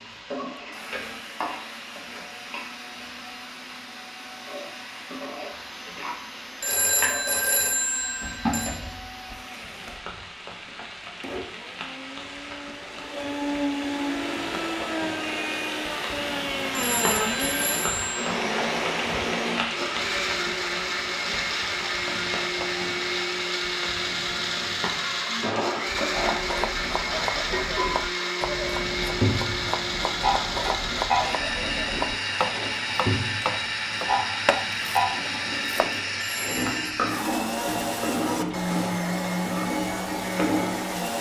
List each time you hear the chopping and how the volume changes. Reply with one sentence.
You can hear the chopping from 25.9 to 36.0 s, at a steady volume.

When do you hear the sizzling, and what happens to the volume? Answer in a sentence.
You can hear the sizzling from 0.0 to 41.1 s, getting louder.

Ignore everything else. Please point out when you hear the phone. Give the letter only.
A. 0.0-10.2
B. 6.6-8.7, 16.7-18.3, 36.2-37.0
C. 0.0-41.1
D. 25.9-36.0
B.